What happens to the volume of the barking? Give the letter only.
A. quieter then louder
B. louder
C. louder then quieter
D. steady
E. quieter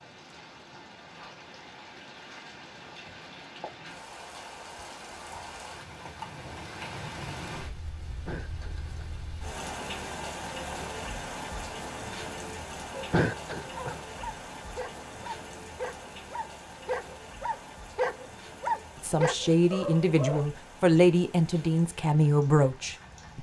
B.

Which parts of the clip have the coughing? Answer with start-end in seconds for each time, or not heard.
8.2-9.1, 13.1-14.0.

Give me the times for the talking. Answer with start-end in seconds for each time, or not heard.
19.0-23.3.